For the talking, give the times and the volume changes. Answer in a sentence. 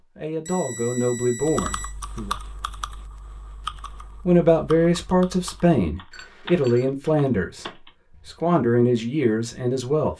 The talking can be heard briefly from 0.1 to 2.4 s; and from 4.2 to 10.1 s, at a steady volume.